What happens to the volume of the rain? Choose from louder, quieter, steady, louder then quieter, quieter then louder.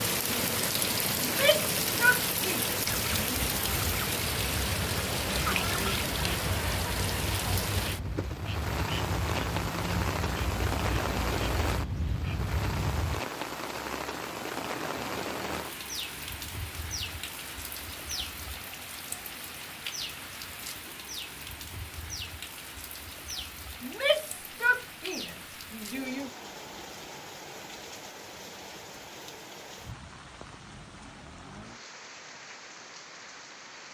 quieter.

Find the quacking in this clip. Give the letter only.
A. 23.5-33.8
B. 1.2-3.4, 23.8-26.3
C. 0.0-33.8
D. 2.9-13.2
D.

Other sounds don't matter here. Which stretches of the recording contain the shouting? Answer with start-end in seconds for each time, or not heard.
1.2-3.4, 23.8-26.3.